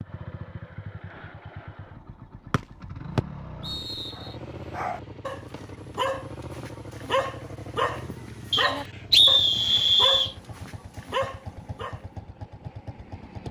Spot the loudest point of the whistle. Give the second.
9 s.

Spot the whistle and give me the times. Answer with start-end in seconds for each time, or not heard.
2.5-4.2, 8.5-10.3.